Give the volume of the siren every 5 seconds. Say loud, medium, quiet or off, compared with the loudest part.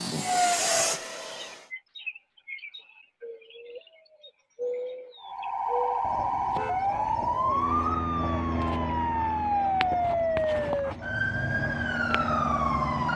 off, loud, loud.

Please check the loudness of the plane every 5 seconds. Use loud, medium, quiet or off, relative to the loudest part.
loud, medium, medium.